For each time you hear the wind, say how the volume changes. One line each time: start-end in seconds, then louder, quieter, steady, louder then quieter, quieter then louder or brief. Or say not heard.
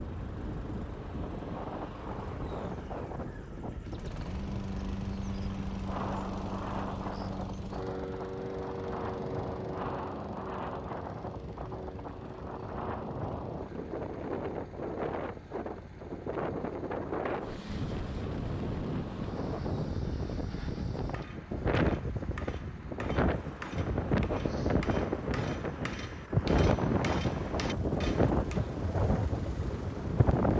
0.0-30.5 louder.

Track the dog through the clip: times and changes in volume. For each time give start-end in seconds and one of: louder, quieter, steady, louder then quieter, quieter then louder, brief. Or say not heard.
not heard.